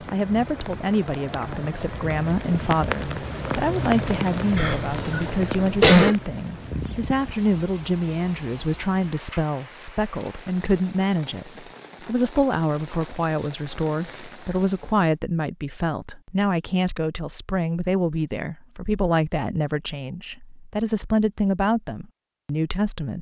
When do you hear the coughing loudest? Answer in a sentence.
The volume of the coughing peaks at 6 seconds.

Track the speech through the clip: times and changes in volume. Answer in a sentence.
You can hear the speech from 0.1 to 23.1 s, at a steady volume.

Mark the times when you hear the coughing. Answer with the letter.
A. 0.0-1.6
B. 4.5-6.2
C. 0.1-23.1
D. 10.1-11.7
B.